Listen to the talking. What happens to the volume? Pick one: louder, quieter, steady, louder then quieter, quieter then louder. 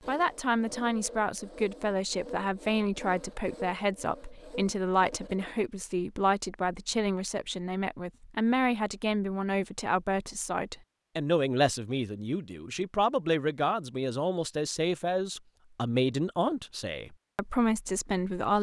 steady.